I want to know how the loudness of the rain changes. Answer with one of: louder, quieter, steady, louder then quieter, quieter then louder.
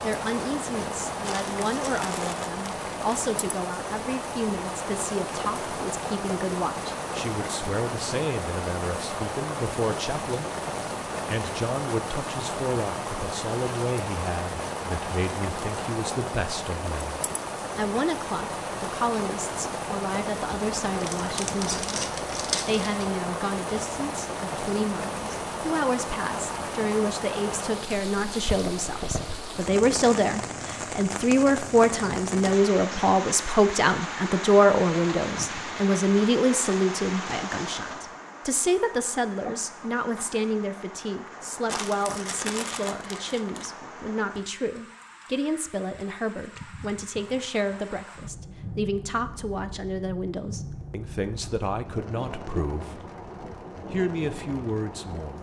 quieter.